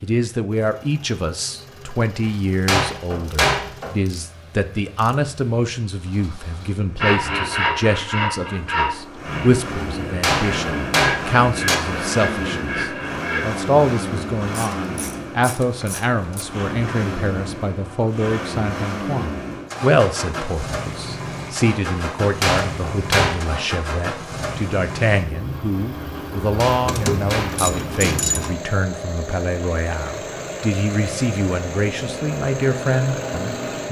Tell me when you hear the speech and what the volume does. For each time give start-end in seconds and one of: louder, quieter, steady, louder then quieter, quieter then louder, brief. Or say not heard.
0.0-33.8 steady.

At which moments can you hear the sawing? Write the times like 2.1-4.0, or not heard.
7.0-13.6.